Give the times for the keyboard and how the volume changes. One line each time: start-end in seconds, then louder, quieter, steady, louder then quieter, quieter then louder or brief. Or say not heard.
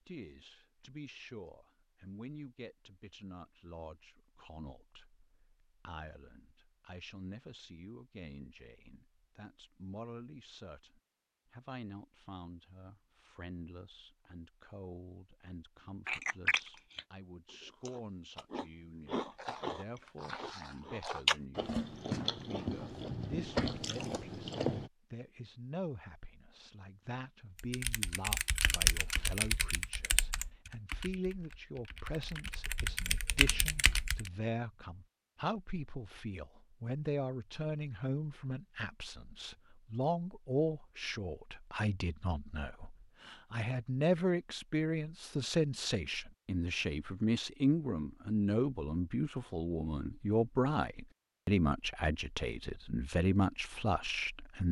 27.6-34.3 quieter then louder.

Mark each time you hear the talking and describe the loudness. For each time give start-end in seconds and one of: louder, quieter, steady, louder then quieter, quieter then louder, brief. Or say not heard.
0.1-54.6 louder.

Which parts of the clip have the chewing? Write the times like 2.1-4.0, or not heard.
16.1-24.9.